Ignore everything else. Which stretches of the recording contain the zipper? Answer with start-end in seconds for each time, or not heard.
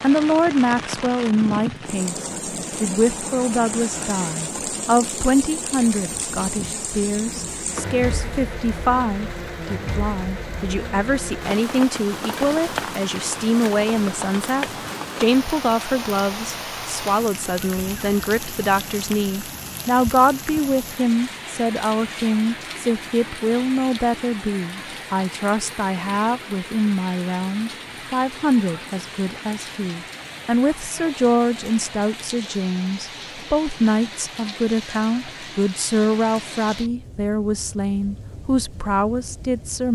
not heard.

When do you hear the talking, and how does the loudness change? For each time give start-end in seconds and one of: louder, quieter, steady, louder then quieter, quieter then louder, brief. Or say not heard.
0.0-39.9 steady.